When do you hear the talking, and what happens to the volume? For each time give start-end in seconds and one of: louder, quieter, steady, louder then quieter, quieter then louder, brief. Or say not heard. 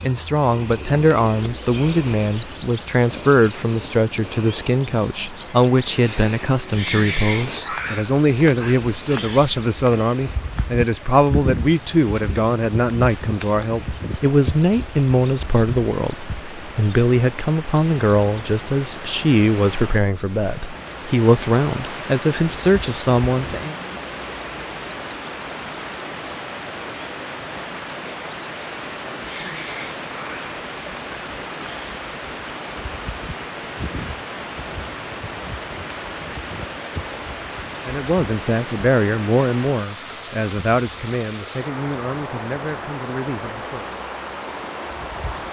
0.0-23.8 steady
37.9-44.0 quieter.